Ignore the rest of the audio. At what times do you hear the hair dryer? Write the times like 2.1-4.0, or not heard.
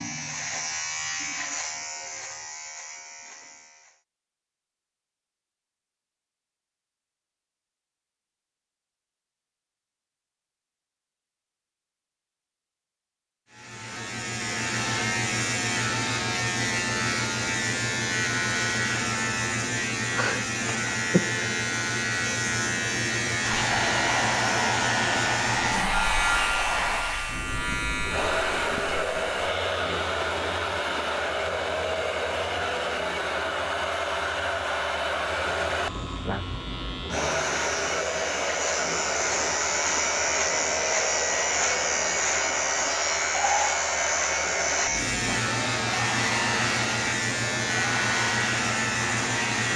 23.4-49.7.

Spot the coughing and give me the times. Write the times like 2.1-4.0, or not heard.
not heard.